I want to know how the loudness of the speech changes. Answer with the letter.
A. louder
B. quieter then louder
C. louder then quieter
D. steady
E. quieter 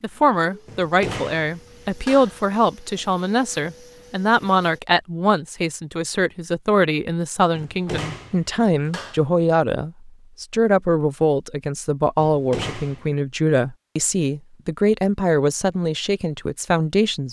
D.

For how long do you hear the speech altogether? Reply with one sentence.
The speech can be heard for 17 seconds in total.